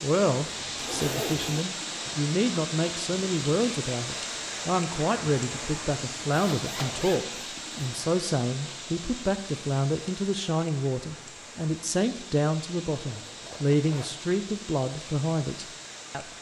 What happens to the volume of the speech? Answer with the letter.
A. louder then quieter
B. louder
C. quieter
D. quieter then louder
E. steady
E.